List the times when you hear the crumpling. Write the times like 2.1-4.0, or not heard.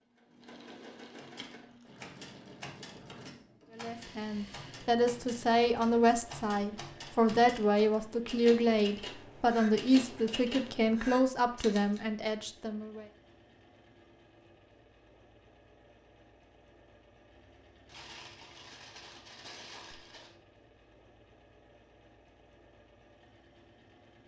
0.4-2.6, 17.9-20.4.